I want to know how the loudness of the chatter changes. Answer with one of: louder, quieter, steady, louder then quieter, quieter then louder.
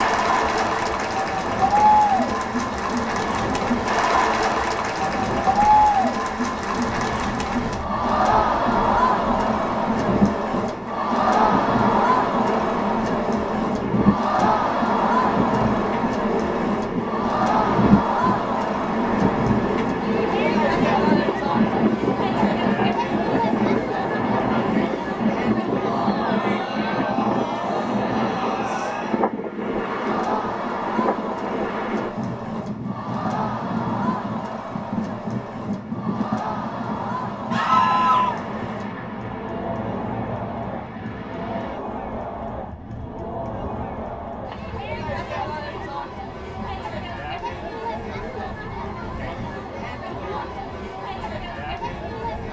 quieter.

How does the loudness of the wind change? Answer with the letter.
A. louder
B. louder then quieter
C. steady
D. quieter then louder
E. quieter
B.